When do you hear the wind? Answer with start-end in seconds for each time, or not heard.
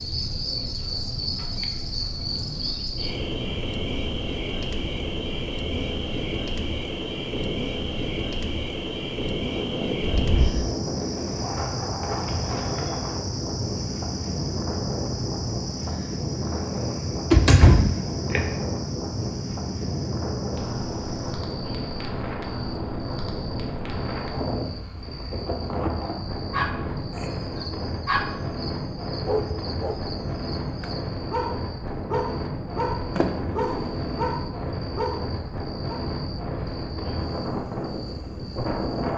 0.0-39.1.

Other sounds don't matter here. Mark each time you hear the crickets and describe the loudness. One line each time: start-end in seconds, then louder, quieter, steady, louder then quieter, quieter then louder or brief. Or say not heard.
0.0-39.1 quieter.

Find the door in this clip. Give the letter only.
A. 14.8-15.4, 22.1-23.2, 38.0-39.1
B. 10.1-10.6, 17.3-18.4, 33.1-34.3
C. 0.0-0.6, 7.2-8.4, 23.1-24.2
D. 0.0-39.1
B.